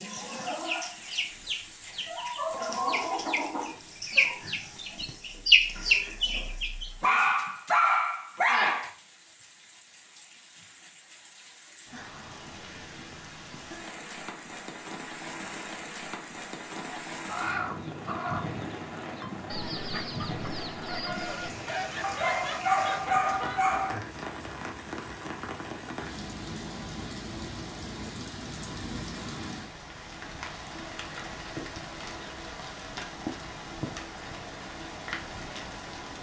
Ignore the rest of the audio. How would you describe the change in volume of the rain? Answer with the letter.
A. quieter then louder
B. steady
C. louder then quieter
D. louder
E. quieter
D.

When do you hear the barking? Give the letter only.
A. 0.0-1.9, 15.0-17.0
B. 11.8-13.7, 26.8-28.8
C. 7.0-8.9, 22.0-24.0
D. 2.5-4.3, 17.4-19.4
C.